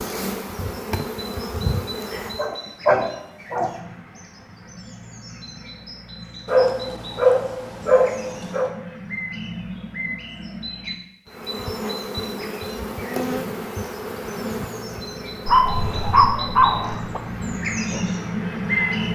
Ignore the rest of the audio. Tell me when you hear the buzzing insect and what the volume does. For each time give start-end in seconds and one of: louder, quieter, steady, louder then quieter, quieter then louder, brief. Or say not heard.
0.0-2.5 brief
11.2-19.0 quieter.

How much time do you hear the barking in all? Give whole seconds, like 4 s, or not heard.
6 s.